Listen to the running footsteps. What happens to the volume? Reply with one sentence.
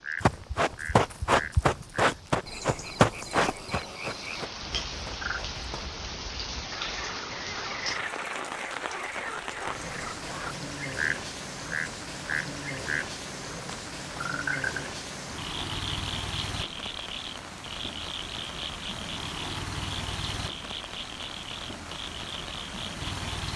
The volume of the running footsteps goes down.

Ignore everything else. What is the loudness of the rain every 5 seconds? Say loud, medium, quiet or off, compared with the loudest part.
medium, loud, loud, loud, loud.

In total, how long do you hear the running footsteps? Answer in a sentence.
The running footsteps can be heard for 6 seconds in total.